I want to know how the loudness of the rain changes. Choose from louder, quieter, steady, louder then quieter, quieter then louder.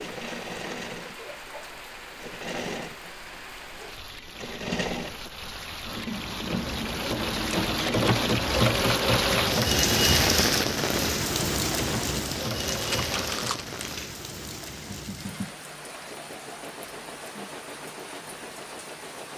louder then quieter.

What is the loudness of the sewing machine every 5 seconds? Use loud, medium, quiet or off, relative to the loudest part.
medium, loud, medium, quiet.